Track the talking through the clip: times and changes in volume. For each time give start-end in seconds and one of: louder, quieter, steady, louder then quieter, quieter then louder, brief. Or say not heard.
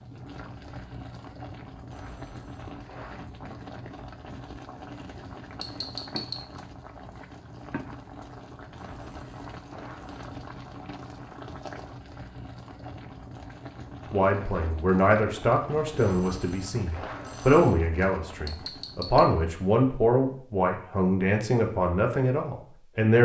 14.1-23.1 steady.